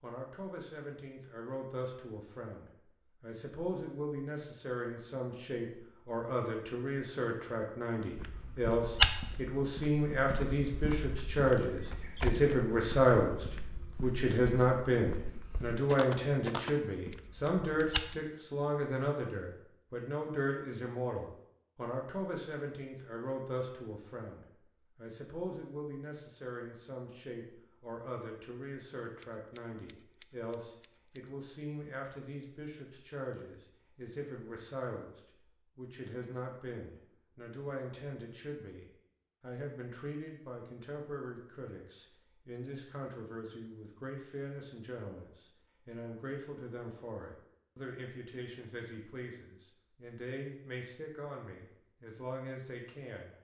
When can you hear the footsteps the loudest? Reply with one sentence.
The loudest moment of the footsteps is at 9 seconds.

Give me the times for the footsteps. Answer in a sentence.
The footsteps can be heard from 8.2 to 18.2 s.